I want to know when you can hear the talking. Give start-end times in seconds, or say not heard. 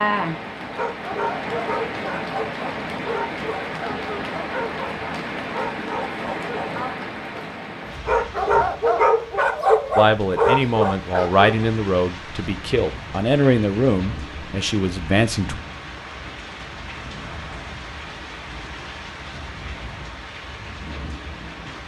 9.9-15.6.